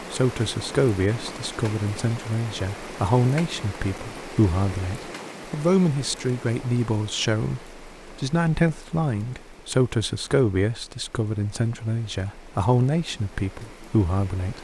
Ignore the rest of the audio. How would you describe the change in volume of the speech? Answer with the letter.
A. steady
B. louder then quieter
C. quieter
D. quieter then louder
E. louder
A.